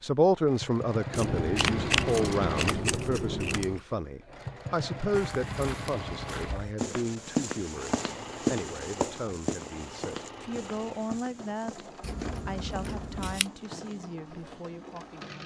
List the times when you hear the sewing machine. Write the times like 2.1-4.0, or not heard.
0.0-15.4.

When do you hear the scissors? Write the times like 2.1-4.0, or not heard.
1.1-3.8, 12.0-13.4.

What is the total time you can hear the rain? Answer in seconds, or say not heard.
not heard.